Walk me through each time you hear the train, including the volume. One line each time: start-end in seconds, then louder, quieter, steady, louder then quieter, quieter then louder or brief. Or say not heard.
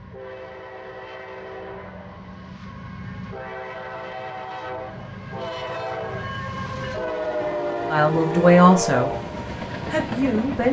0.0-10.6 louder.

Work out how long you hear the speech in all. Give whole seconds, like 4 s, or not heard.
2 s.